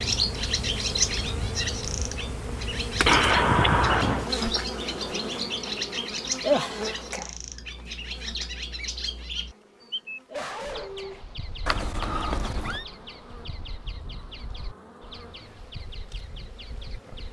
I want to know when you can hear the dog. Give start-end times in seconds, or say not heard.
9.8-11.2.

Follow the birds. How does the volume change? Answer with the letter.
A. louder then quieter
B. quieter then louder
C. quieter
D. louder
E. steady
C.